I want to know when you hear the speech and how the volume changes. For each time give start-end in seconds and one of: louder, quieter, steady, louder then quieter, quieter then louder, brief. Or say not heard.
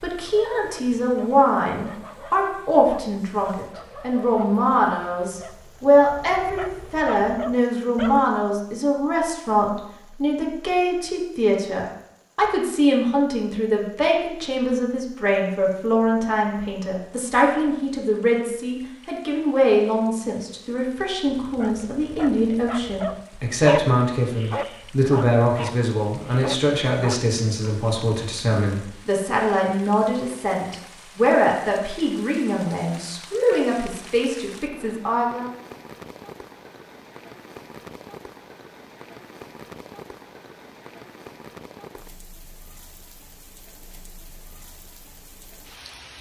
0.0-35.5 steady.